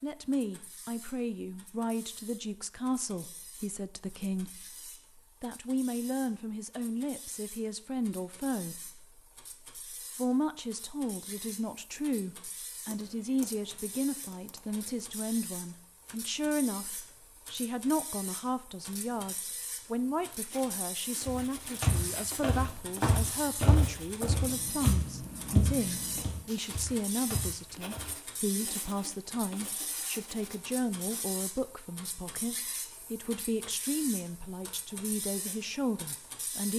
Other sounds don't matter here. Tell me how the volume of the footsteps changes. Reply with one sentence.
The loudness of the footsteps goes down.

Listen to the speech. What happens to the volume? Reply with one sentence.
The loudness of the speech stays about the same.